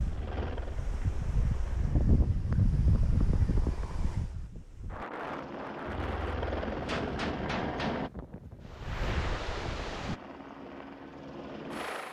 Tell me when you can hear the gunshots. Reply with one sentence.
You can hear the gunshots from 6.8 to 8.1 s.